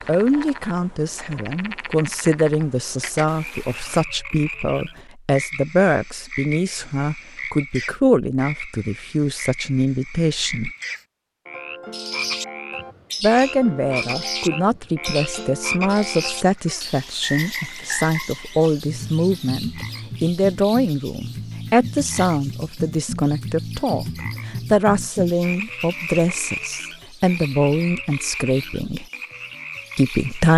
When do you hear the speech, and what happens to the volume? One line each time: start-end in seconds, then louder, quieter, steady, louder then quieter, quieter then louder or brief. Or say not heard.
0.1-10.7 steady
13.2-29.1 steady
29.9-30.5 brief.